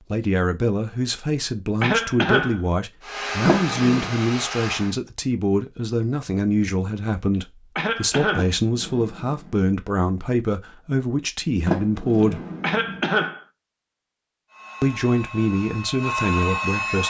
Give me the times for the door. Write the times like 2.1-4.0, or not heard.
3.5-4.1, 8.3-9.7, 11.7-13.0.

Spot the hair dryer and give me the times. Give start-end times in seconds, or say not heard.
3.0-5.0, 14.5-17.0.